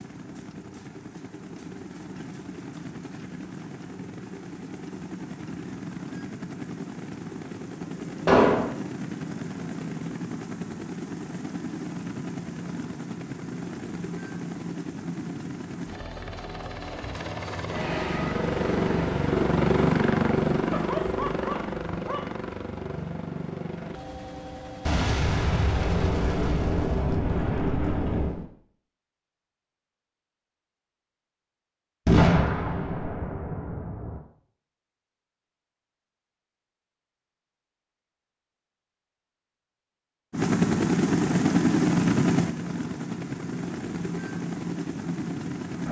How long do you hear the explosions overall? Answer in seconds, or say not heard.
6 s.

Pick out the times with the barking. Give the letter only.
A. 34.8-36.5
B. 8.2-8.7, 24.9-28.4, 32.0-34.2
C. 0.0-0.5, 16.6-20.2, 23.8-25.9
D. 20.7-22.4
D.